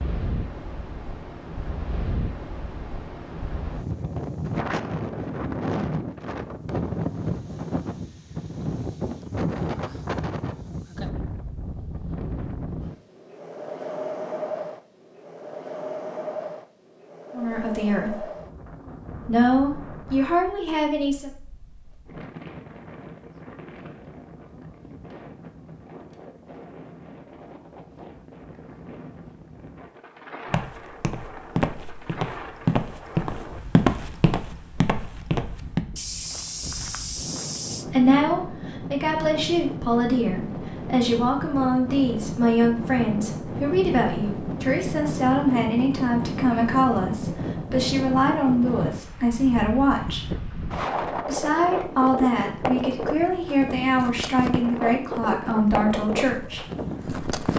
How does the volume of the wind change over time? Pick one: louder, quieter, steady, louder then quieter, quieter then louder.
quieter then louder.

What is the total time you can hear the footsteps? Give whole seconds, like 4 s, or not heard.
7 s.